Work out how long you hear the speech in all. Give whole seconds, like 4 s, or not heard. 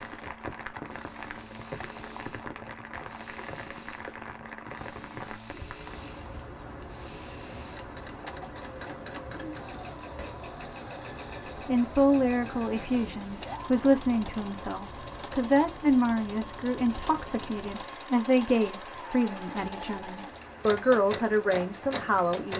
11 s.